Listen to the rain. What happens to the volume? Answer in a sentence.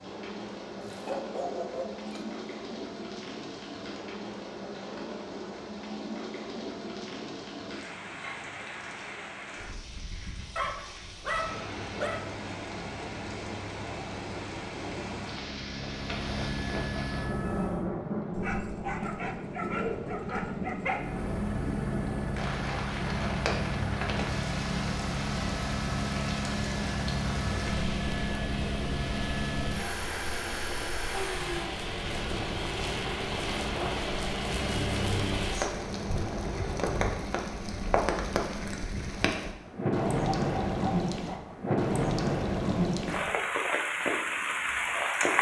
The loudness of the rain goes up.